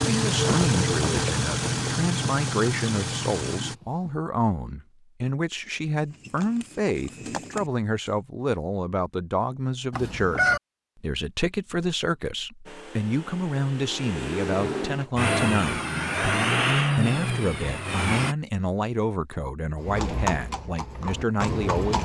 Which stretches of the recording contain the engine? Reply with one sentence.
You can hear the engine from 0.0 to 3.8 s and from 12.7 to 18.4 s.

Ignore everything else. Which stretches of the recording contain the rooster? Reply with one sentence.
The rooster can be heard from 9.9 to 10.6 s.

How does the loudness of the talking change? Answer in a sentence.
The volume of the talking stays about the same.